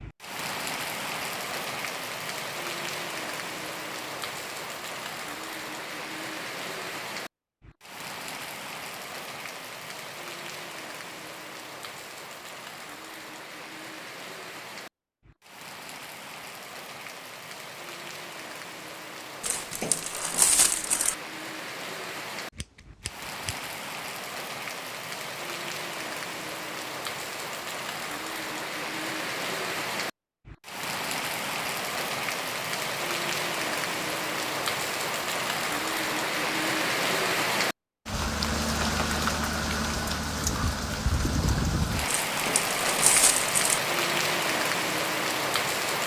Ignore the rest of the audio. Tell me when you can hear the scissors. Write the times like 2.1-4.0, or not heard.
22.6-23.6.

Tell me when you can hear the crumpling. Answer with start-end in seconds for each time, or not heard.
19.4-21.1, 42.0-43.8.